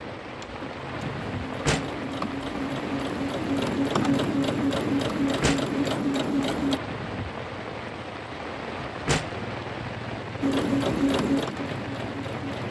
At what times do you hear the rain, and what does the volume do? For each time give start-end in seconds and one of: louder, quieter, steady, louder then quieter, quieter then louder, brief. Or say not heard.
0.0-12.6 steady.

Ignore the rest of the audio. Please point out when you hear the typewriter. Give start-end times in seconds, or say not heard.
not heard.